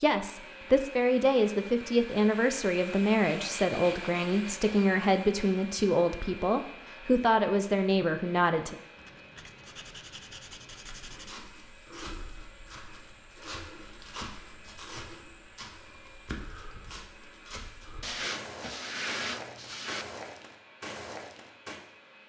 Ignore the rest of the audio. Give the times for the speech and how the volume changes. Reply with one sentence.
The speech can be heard from 0.0 to 8.8 s, at a steady volume.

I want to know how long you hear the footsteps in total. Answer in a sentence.
You can hear the footsteps for 11 seconds altogether.